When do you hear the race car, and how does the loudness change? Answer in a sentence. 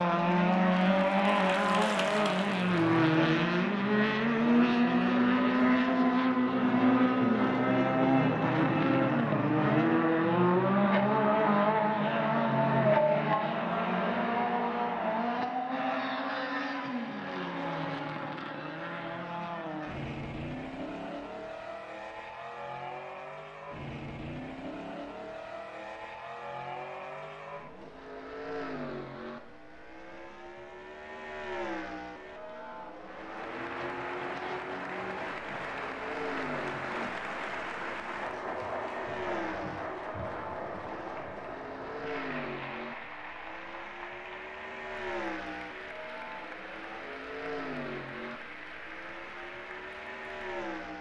The race car can be heard from 0.0 to 50.9 s, getting quieter.